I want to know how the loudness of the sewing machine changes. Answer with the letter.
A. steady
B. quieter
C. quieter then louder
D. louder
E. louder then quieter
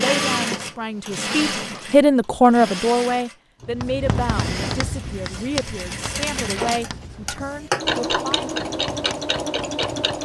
C.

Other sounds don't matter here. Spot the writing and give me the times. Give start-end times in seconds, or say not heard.
3.6-10.2.